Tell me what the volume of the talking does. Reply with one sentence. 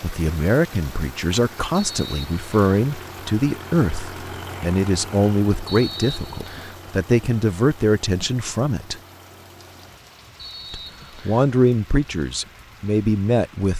The loudness of the talking stays about the same.